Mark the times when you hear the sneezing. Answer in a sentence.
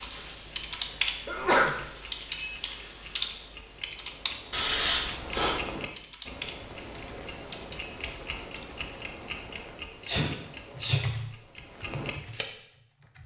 You can hear the sneezing from 1.2 to 1.8 s, from 4.5 to 5.7 s and from 10.1 to 11.1 s.